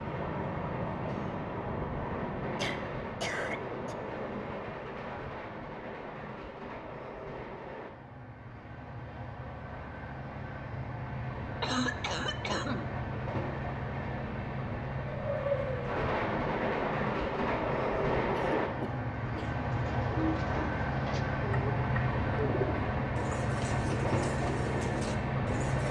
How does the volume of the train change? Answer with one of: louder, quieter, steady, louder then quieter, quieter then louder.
quieter then louder.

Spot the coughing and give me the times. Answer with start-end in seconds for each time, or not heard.
2.5-4.0, 11.6-12.9, 18.3-19.6.